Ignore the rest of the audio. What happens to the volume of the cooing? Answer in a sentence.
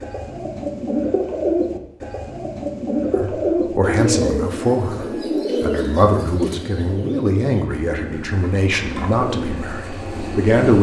The loudness of the cooing goes down.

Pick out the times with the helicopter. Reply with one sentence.
You can't hear the helicopter here.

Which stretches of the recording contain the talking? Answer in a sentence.
The talking can be heard from 3.1 to 10.7 s.